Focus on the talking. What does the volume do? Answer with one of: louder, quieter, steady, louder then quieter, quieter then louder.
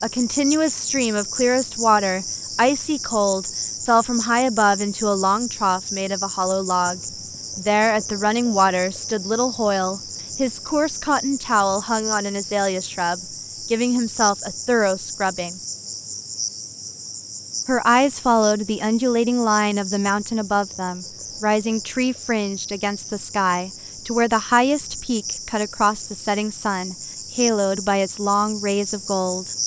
steady.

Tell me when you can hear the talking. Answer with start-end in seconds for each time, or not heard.
0.0-15.6, 17.6-29.5.